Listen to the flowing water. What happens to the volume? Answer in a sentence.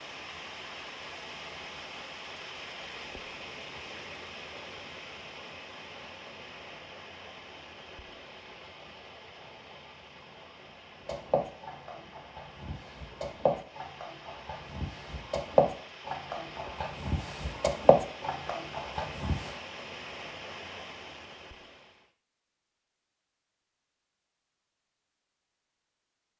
The loudness of the flowing water goes down, then up.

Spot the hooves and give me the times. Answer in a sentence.
You can hear the hooves from 11.1 to 19.5 s.